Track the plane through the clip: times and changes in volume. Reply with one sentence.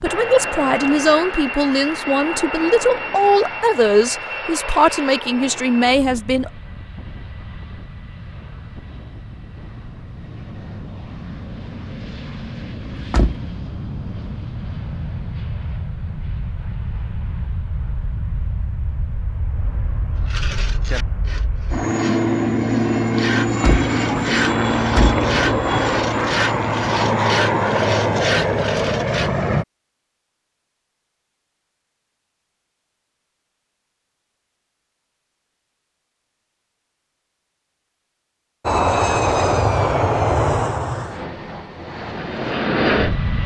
The plane can be heard from 0.0 to 29.6 s, getting quieter then louder; and from 38.6 to 43.4 s, getting quieter then louder.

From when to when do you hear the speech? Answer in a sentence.
The speech can be heard from 0.0 to 6.5 s.